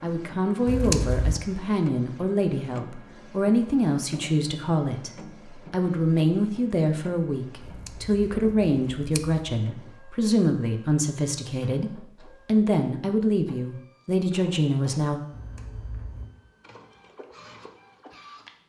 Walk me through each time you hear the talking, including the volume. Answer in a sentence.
The talking can be heard from 0.0 to 15.2 s, at a steady volume.